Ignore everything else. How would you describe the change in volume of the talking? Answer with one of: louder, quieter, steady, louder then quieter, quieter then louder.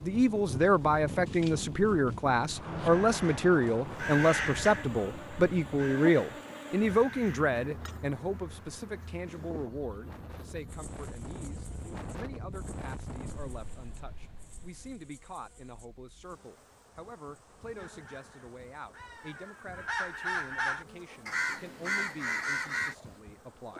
quieter.